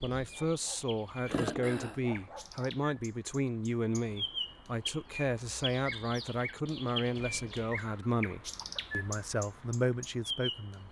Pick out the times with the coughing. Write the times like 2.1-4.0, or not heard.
1.2-2.0, 8.4-8.8.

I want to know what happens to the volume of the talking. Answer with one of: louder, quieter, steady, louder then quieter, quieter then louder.
steady.